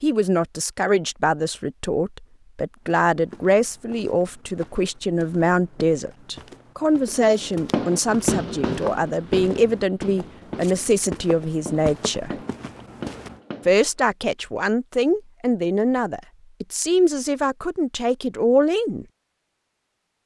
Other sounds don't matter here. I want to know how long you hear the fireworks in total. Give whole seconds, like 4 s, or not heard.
7 s.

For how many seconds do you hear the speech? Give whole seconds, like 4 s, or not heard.
18 s.